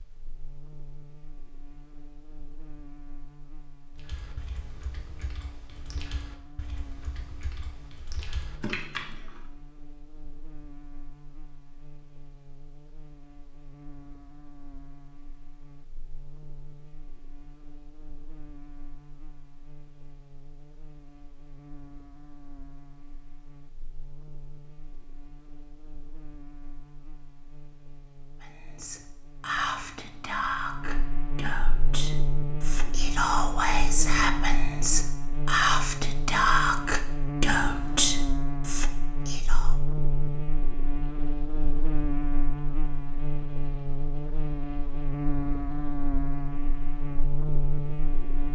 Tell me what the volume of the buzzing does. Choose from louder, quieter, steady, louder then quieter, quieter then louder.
louder.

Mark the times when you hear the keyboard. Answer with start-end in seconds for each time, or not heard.
4.0-9.4.